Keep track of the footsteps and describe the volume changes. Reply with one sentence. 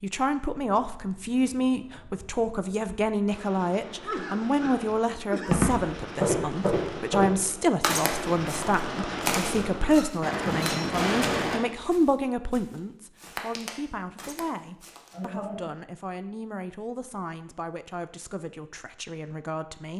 The volume of the footsteps goes down.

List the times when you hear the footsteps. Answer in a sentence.
You can hear the footsteps from 5.5 to 15.2 s.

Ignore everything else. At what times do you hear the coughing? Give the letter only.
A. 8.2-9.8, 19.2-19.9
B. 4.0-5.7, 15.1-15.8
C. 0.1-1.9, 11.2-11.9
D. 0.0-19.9
B.